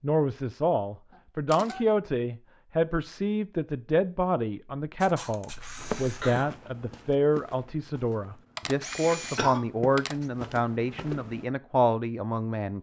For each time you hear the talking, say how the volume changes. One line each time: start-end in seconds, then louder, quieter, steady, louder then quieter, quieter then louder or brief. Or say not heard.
0.0-12.7 steady.